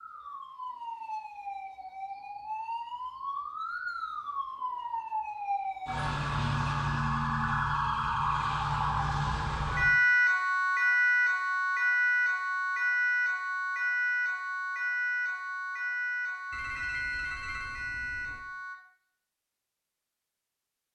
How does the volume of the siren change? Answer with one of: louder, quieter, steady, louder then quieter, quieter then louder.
louder then quieter.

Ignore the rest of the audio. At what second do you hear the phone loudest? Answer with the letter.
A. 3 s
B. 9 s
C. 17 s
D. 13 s
C.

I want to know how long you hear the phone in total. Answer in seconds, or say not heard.
2 s.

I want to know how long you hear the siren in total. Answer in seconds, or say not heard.
19 s.